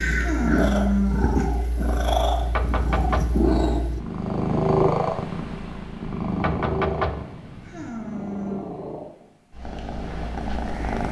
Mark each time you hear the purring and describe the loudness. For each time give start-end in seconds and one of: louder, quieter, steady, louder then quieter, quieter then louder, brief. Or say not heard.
0.0-11.0 quieter.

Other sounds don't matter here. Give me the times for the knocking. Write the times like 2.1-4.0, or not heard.
2.4-4.0, 6.2-7.9.